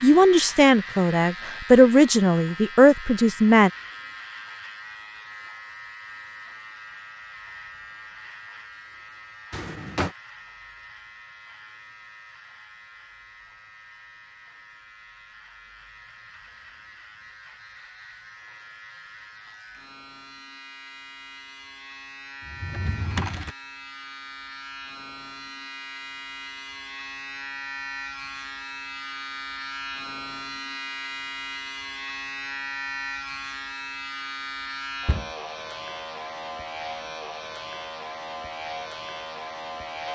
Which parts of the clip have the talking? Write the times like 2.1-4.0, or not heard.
0.0-3.7.